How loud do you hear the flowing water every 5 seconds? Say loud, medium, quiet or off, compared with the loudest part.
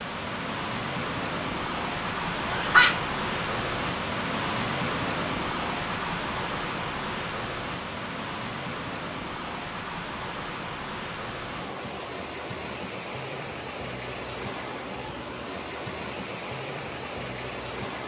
loud, loud, medium, medium.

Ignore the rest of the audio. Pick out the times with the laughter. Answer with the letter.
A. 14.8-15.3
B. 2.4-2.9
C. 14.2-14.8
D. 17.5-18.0
B.